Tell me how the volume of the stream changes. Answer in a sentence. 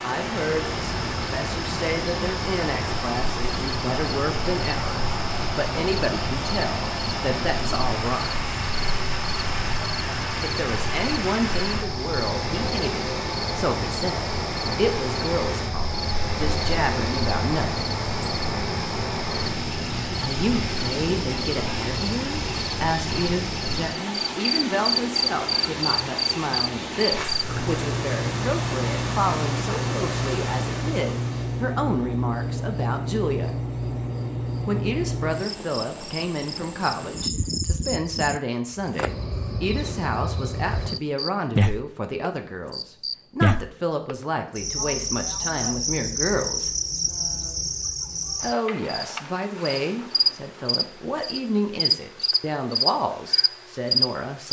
The loudness of the stream stays about the same.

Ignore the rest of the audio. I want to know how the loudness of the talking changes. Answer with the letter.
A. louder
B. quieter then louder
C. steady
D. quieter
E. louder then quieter
C.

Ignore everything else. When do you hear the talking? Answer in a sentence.
You can hear the talking from 0.0 to 8.3 s, from 10.4 to 17.9 s, from 20.2 to 33.5 s, from 34.6 to 46.7 s and from 48.4 to 54.4 s.